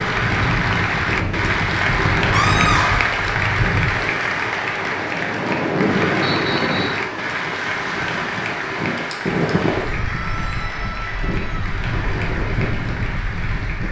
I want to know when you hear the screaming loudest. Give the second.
3 s.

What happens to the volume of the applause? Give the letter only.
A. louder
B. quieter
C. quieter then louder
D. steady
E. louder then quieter
B.